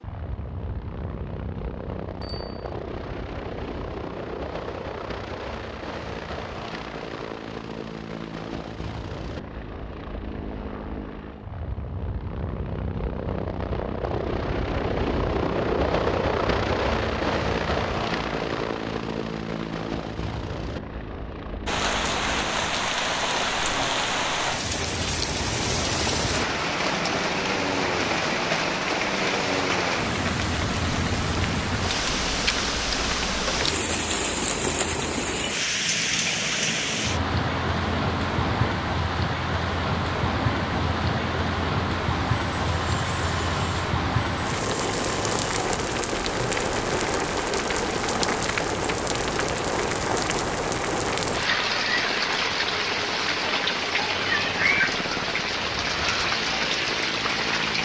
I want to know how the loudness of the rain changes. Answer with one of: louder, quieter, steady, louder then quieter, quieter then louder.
steady.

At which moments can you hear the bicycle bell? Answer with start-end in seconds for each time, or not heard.
2.2-2.7.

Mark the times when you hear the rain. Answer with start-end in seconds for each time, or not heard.
21.6-57.8.